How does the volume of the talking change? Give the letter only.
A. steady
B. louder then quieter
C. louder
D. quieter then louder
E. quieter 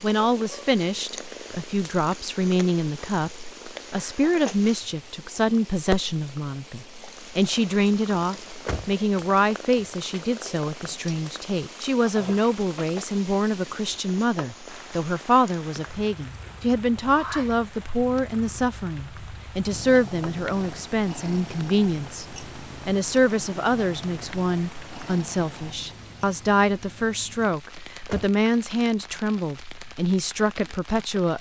A.